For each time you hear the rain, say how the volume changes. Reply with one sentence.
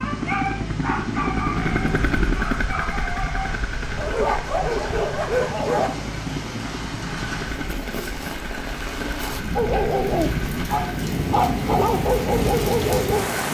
You can hear the rain from 0.0 to 13.4 s, getting louder.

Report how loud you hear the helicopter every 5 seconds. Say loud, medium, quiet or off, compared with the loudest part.
loud, medium, medium.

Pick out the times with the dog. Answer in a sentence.
You can hear the dog from 0.0 to 5.9 s and from 9.6 to 13.3 s.